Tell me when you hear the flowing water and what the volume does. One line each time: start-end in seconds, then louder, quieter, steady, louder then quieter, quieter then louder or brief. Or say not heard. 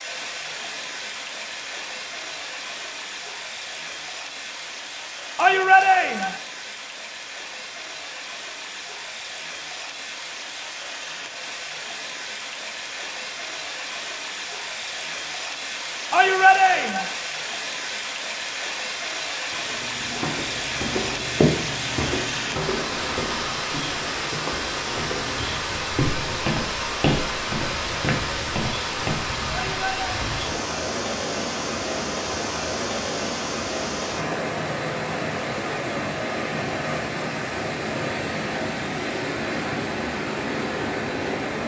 0.0-41.6 louder.